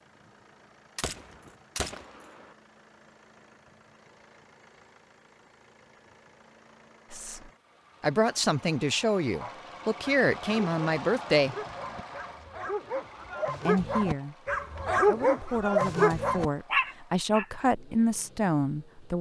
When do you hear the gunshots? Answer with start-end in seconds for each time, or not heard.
0.9-2.5.